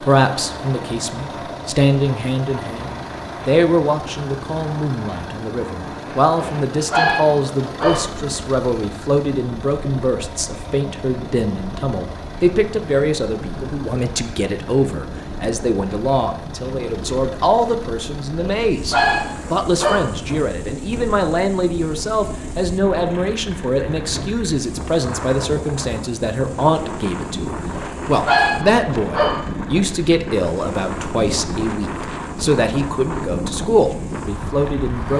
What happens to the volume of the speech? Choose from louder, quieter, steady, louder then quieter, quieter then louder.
steady.